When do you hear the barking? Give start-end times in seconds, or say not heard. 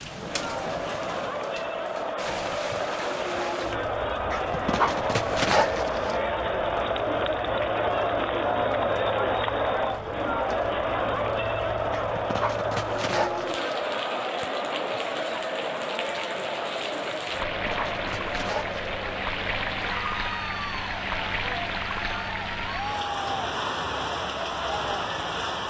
4.3-6.2, 11.9-13.8, 17.4-18.9.